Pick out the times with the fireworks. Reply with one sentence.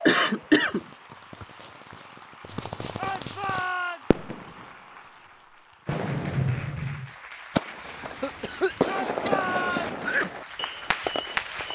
You can hear the fireworks from 0.0 to 4.7 s and from 5.8 to 11.7 s.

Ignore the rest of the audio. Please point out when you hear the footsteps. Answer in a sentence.
You can't hear the footsteps here.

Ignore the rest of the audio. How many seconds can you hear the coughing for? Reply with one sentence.
The coughing can be heard for 3 seconds in total.